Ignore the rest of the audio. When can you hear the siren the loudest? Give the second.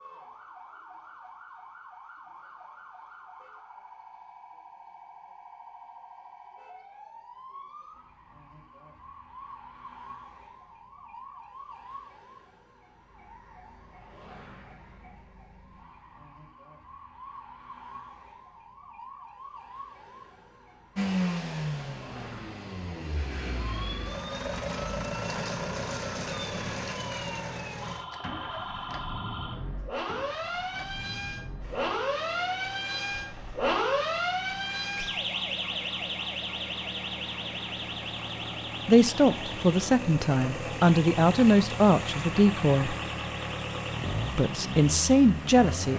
34 s.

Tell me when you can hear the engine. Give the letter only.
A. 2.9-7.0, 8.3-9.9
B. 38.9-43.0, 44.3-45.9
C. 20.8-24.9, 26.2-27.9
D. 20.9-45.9
D.